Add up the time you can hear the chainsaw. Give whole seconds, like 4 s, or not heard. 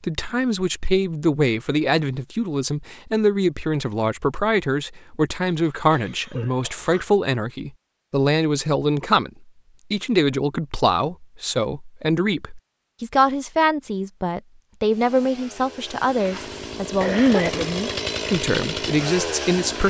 5 s.